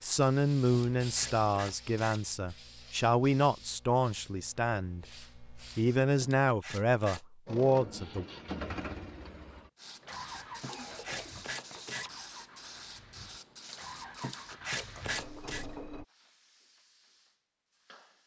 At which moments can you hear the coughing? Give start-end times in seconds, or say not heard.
10.3-11.9.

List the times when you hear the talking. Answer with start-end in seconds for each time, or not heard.
0.0-8.2.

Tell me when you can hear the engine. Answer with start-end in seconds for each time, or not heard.
7.5-16.1.